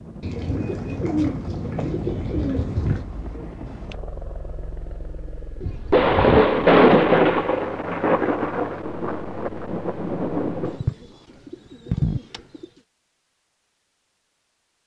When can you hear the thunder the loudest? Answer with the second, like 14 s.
7 s.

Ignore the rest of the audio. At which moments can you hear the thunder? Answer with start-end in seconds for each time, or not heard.
5.8-10.8.